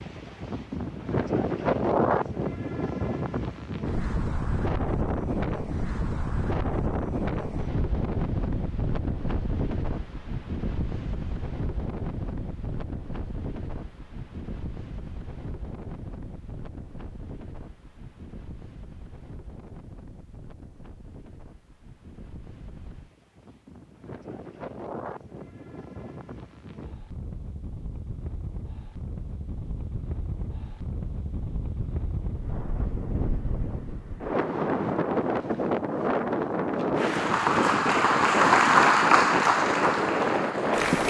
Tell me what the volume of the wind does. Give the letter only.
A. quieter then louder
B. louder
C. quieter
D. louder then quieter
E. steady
A.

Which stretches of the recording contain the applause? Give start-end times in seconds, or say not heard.
37.0-41.0.